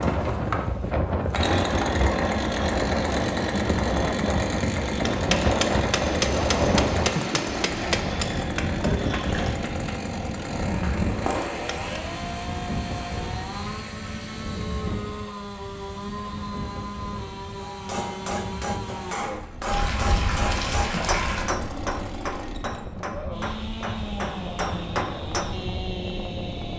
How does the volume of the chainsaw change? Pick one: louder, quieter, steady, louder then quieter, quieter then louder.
quieter.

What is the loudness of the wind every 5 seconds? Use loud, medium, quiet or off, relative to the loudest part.
loud, loud, medium, quiet, quiet, medium.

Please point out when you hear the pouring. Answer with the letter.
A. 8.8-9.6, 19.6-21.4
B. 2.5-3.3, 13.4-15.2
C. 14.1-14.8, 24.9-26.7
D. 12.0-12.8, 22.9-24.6
A.